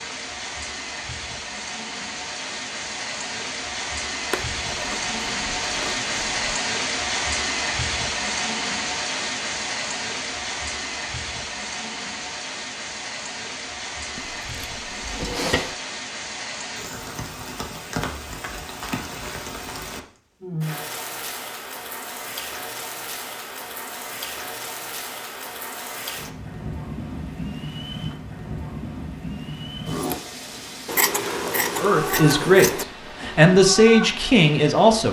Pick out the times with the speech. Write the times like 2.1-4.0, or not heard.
31.8-35.0.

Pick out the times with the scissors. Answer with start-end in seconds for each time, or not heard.
4.3-6.3, 14.2-15.8, 30.9-32.9.